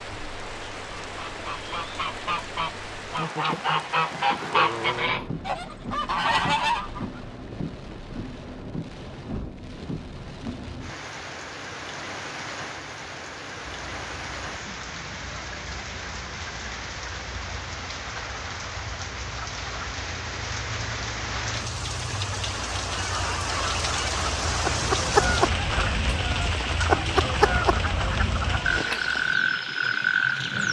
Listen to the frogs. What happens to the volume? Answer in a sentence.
The loudness of the frogs goes up.